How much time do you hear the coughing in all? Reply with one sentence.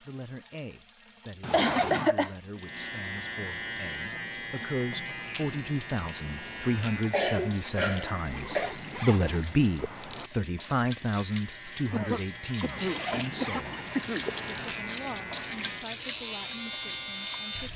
The coughing can be heard for 5 seconds in total.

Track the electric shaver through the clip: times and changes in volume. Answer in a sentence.
The electric shaver can be heard from 2.5 to 17.7 s, getting quieter then louder.